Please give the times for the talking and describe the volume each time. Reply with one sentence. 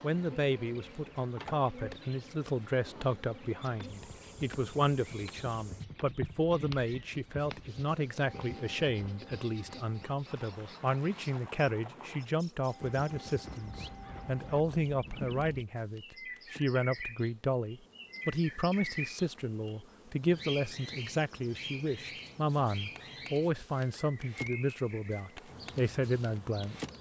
The talking can be heard from 0.0 to 26.9 s, at a steady volume.